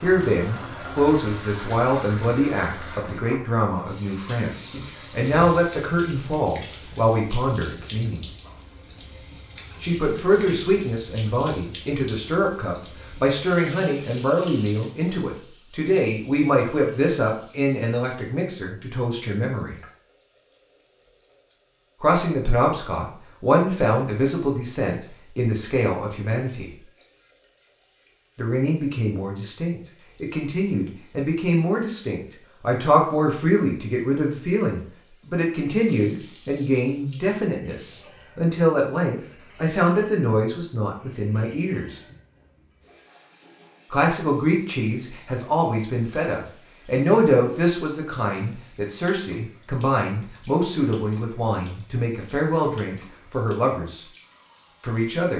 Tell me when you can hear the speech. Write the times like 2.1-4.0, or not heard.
0.0-8.2, 9.8-19.8, 22.0-26.6, 28.4-42.0, 43.9-54.0, 54.8-55.3.